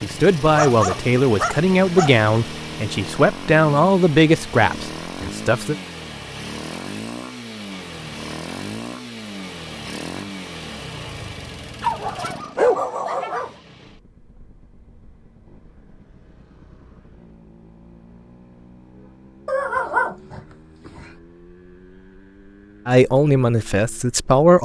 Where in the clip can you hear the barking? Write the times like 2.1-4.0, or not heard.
0.6-2.2, 11.8-13.6, 19.4-21.1.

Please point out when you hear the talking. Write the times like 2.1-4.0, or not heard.
0.0-5.8, 22.9-24.6.